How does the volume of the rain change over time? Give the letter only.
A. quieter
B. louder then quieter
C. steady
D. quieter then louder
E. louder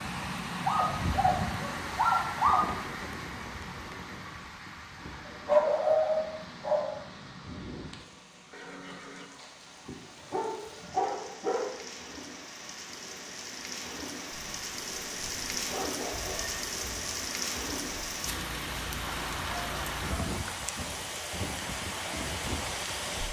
D.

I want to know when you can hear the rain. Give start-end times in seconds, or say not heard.
0.0-23.2.